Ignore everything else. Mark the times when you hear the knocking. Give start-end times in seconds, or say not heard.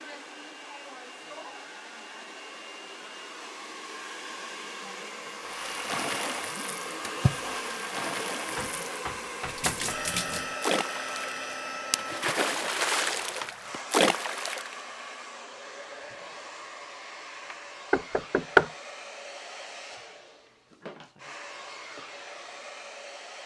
8.6-9.9, 17.5-18.7.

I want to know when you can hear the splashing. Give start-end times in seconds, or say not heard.
5.5-14.7.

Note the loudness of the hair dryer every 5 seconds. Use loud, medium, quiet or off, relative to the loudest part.
medium, loud, loud, medium, medium.